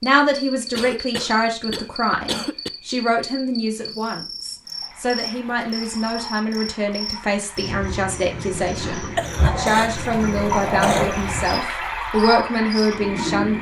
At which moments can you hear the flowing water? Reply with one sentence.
The flowing water can be heard from 4.7 to 13.5 s.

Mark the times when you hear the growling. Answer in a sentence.
The growling can be heard from 8.5 to 11.2 s.